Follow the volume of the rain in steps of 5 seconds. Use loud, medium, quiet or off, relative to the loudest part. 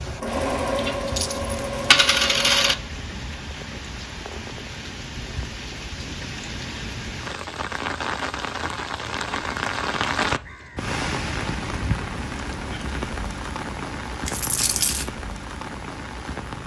medium, loud, loud, medium.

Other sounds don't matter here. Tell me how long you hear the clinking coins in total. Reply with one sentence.
You can hear the clinking coins for 3 seconds altogether.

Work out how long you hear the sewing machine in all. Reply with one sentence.
You can hear the sewing machine for 3 seconds altogether.